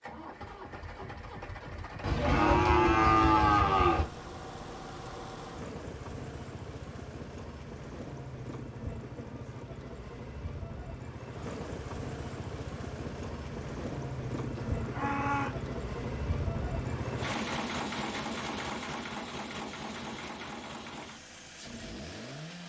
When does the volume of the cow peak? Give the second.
3 s.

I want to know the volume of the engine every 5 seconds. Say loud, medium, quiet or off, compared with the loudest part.
medium, medium, loud, loud, medium.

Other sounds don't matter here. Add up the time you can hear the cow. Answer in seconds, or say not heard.
3 s.